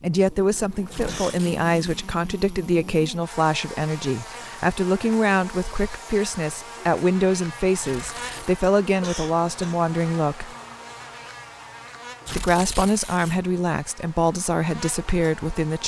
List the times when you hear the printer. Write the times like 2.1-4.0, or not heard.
not heard.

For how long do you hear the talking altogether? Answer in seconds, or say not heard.
14 s.